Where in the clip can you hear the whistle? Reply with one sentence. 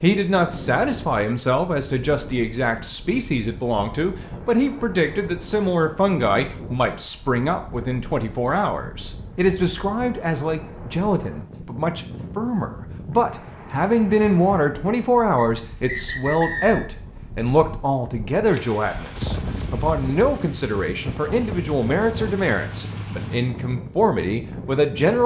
You can hear the whistle from 15.3 to 16.9 s.